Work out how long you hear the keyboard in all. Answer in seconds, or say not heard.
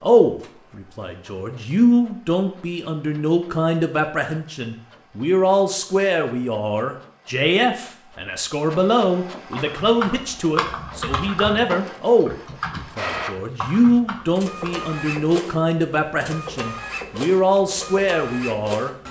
5 s.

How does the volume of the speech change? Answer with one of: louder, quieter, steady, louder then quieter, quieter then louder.
steady.